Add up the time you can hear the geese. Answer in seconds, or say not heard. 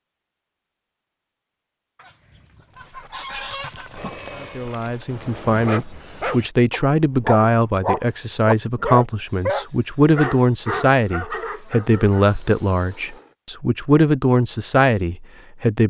2 s.